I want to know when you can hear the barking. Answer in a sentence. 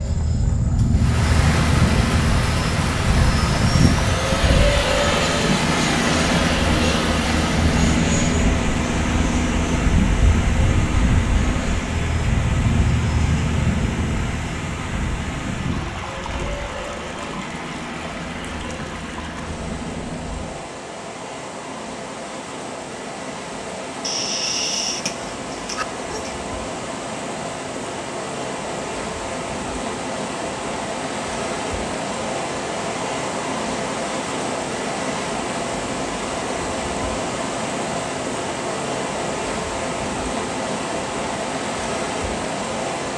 The barking can be heard from 24.0 to 26.4 s.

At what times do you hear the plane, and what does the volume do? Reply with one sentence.
You can hear the plane from 0.0 to 20.5 s, getting quieter.